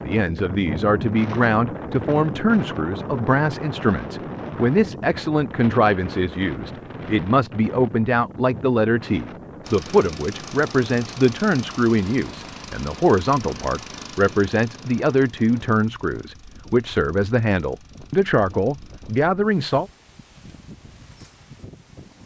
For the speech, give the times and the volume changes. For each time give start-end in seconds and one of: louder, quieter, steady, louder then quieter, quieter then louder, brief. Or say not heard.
0.0-19.9 steady.